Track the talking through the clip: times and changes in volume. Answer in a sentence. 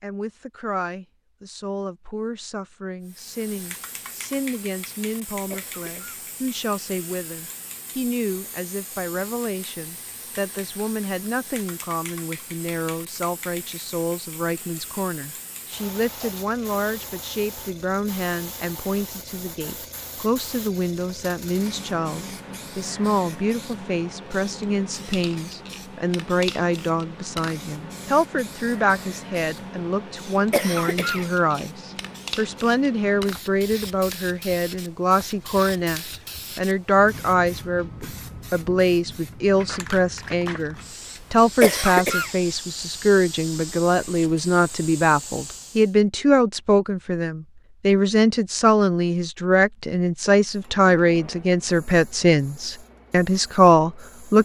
The talking can be heard from 0.0 to 54.4 s, getting louder.